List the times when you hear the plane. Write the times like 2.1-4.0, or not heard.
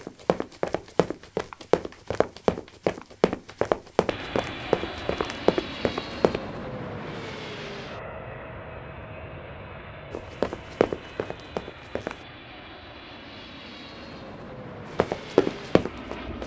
4.0-16.4.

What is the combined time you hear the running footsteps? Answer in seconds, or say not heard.
10 s.